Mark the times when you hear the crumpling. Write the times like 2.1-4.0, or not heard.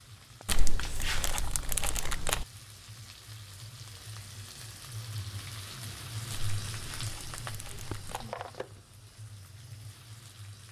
0.5-2.5, 6.3-8.2.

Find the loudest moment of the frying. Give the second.
7 s.